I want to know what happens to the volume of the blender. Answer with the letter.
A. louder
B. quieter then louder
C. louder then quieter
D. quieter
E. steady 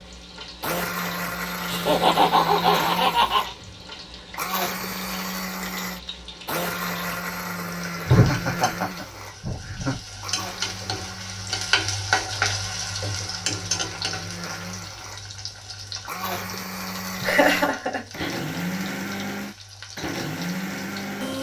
B.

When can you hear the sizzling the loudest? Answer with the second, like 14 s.
12 s.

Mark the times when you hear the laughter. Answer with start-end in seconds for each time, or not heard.
1.6-3.5, 8.1-10.0, 17.2-18.3.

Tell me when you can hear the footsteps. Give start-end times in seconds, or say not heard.
not heard.